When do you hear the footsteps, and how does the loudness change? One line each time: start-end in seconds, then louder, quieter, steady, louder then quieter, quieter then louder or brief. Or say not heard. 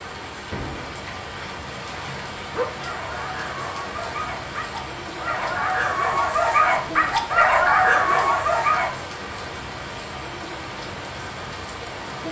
not heard.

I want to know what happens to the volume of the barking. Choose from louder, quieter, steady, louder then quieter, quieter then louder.
louder.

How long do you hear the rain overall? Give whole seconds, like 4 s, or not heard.
12 s.